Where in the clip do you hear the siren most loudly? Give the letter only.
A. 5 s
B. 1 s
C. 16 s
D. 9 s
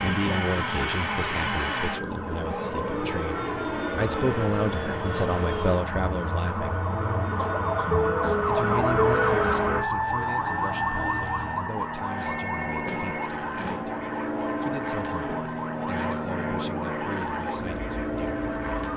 D.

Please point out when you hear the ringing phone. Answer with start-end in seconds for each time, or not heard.
12.2-13.9.